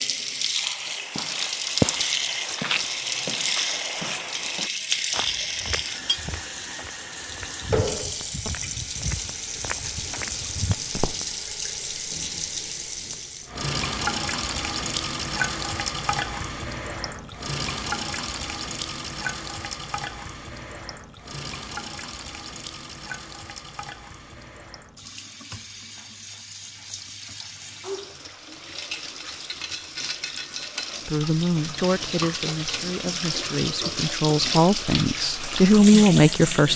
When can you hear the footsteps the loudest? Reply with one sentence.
The volume of the footsteps peaks at 2 seconds.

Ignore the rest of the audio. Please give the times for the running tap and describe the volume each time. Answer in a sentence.
You can hear the running tap from 0.0 to 36.7 s, getting quieter then louder.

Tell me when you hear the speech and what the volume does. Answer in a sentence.
You can hear the speech from 31.1 to 36.7 s, getting quieter then louder.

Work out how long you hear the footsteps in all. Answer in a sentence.
The footsteps can be heard for 10 seconds in total.